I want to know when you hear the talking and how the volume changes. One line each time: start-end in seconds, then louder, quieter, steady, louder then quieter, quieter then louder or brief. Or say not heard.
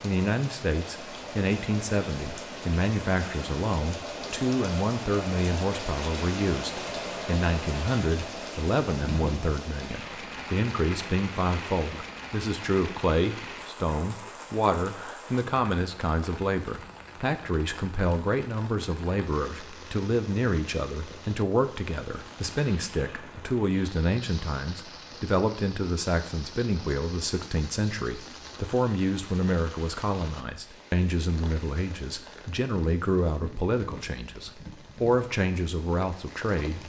0.0-36.8 steady.